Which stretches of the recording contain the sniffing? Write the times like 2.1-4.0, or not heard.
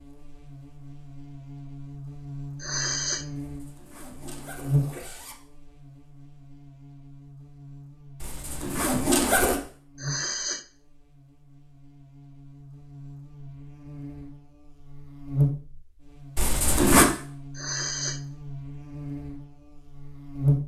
2.6-3.2, 9.9-10.7, 17.6-18.2.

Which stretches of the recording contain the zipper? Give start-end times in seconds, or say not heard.
3.4-5.3, 8.2-9.6, 16.4-17.1.